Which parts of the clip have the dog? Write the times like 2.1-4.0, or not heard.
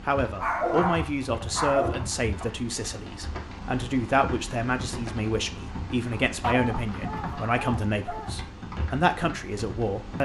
0.4-2.0, 6.4-8.4.